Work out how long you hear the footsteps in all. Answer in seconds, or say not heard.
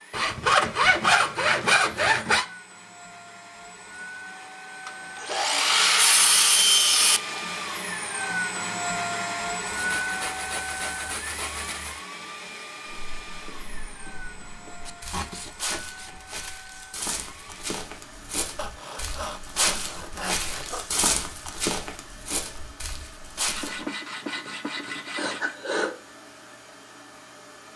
11 s.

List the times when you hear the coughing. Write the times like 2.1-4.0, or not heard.
5.2-5.9, 25.1-25.9.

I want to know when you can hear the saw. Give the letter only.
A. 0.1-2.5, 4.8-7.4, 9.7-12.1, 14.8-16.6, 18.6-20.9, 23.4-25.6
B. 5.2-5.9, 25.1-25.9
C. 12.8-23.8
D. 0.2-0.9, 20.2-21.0
A.